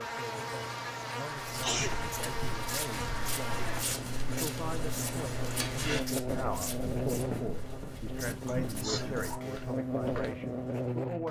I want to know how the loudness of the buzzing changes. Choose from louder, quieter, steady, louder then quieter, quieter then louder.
steady.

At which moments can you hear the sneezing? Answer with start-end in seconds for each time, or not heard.
1.6-2.0, 8.4-9.3.